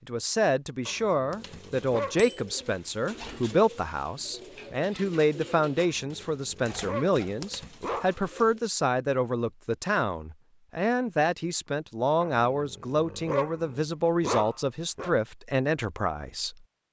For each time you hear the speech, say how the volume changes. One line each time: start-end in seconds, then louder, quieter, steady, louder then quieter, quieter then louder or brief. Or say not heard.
0.1-16.6 steady.